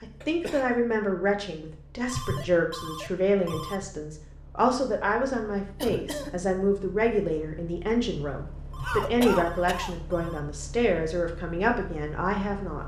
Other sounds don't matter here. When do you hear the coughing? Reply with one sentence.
You can hear the coughing from 0.2 to 0.7 s, from 5.8 to 6.4 s and from 8.8 to 9.9 s.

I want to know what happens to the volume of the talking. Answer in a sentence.
The loudness of the talking stays about the same.